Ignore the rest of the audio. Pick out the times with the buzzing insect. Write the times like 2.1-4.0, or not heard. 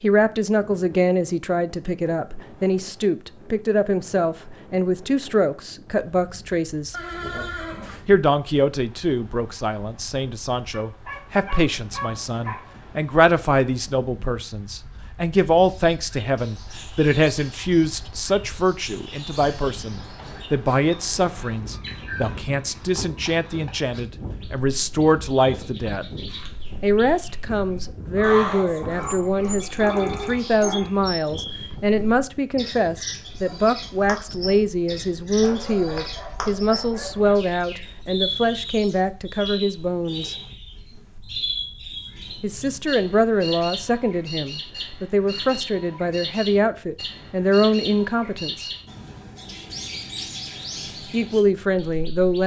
not heard.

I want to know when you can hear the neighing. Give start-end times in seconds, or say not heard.
6.9-8.2.